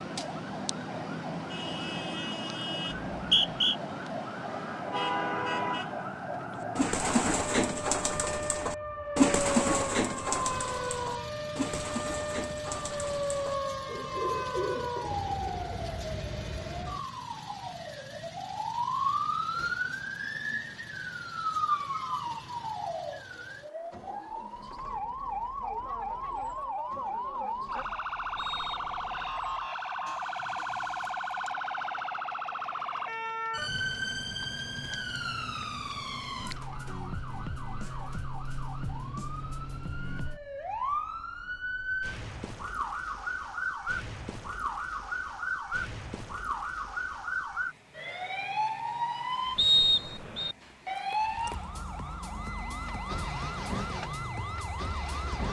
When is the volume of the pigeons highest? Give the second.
9 s.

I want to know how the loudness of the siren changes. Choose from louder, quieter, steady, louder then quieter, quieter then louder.
steady.